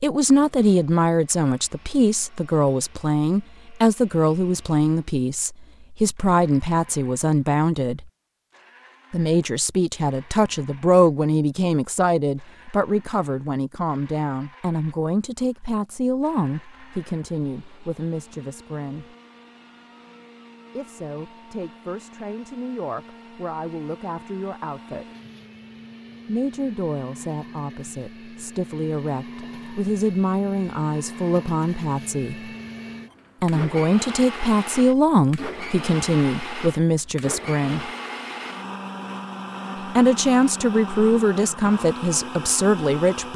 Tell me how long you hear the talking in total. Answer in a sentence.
The talking can be heard for 37 seconds in total.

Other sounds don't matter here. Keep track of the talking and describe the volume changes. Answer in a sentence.
The volume of the talking goes down, then up.